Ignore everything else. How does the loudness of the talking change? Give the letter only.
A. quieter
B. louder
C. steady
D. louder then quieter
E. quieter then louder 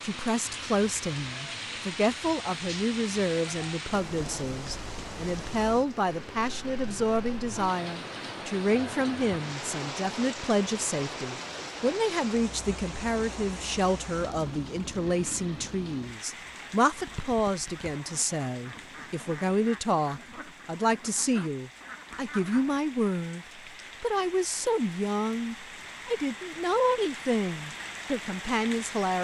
C.